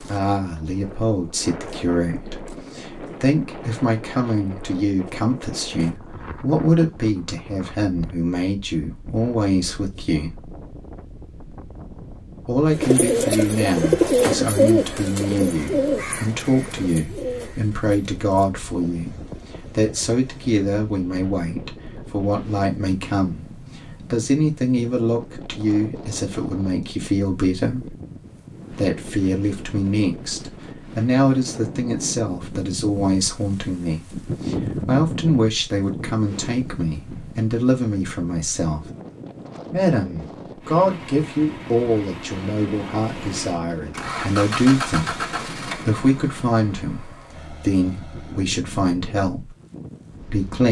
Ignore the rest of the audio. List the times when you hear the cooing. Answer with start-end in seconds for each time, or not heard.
12.7-18.6.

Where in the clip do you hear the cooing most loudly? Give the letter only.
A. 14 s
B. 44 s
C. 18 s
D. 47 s
A.